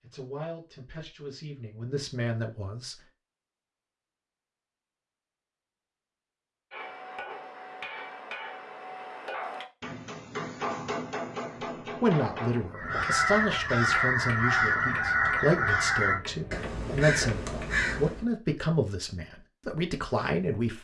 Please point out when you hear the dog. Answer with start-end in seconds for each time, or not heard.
not heard.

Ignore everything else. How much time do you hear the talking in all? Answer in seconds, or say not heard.
12 s.